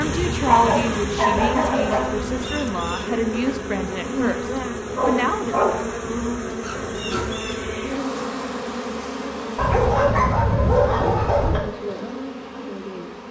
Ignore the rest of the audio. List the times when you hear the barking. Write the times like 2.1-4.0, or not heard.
0.4-2.0, 5.0-7.2, 9.6-11.6.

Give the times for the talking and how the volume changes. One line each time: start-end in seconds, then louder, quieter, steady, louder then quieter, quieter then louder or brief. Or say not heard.
0.0-5.7 steady.